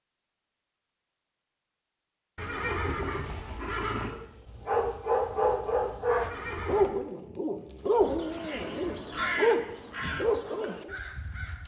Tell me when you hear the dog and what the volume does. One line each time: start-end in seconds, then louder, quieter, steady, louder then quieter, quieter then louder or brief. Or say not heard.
4.1-10.9 quieter then louder.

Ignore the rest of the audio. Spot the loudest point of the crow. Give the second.
9 s.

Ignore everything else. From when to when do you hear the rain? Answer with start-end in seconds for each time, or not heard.
not heard.